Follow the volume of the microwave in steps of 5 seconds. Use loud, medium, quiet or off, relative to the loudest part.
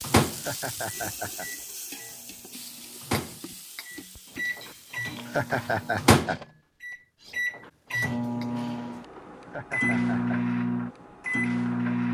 medium, loud, loud.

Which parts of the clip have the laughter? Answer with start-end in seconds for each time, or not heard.
0.2-1.5, 5.0-6.4, 9.3-10.6.